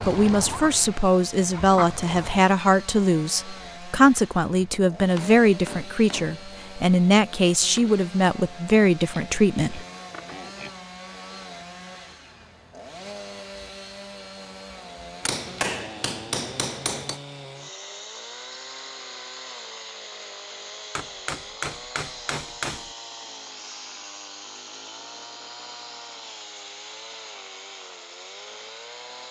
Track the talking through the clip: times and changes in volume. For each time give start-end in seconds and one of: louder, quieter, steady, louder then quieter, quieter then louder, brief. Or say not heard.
0.1-9.8 steady.